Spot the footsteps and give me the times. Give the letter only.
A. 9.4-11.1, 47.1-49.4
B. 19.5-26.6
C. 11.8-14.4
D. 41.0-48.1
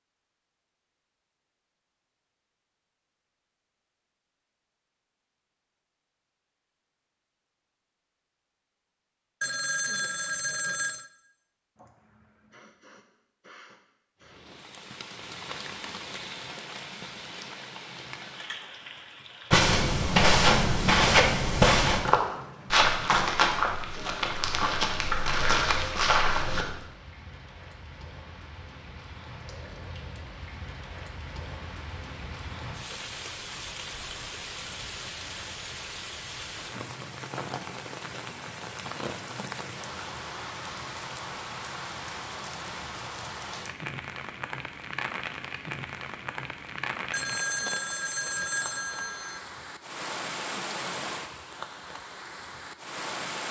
B.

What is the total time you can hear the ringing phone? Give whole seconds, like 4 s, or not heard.
4 s.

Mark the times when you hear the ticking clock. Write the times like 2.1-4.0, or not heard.
not heard.